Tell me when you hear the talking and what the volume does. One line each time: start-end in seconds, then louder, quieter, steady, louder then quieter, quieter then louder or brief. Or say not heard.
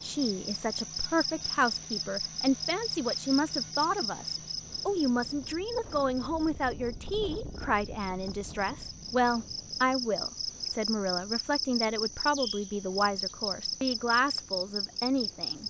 0.0-15.6 steady.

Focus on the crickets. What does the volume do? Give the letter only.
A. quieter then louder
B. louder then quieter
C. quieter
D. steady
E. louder
A.